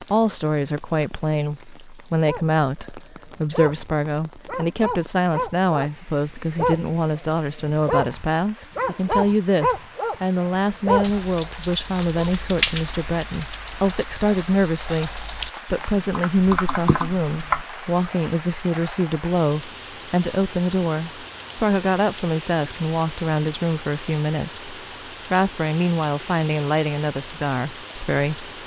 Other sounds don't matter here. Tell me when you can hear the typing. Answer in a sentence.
The typing can be heard from 11.0 to 17.6 s.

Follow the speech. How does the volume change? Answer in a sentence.
The volume of the speech stays about the same.